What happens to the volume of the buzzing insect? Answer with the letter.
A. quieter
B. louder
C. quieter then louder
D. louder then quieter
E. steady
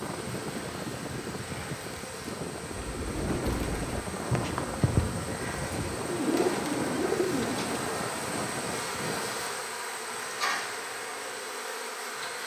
B.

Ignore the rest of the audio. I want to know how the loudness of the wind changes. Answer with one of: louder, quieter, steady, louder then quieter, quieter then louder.
steady.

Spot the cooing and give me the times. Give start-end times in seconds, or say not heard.
2.7-7.8.